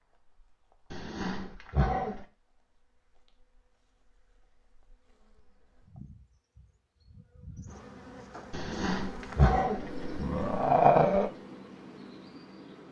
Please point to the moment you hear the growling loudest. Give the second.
11 s.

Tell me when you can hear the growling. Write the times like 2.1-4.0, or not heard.
0.9-2.2, 8.5-11.3.